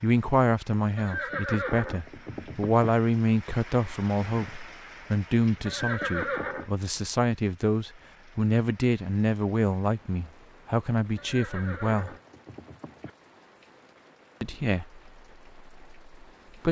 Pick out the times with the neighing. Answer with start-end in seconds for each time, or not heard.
0.9-2.9, 5.7-6.7, 11.2-13.1.